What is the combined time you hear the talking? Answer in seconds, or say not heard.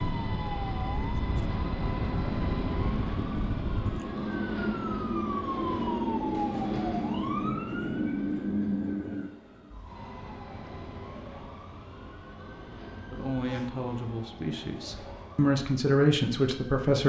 4 s.